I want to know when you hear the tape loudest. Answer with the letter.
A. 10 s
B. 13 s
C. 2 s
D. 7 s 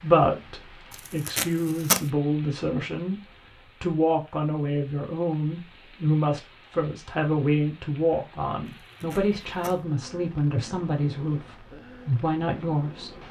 C.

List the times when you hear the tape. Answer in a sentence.
You can hear the tape from 0.9 to 2.0 s and from 8.7 to 9.8 s.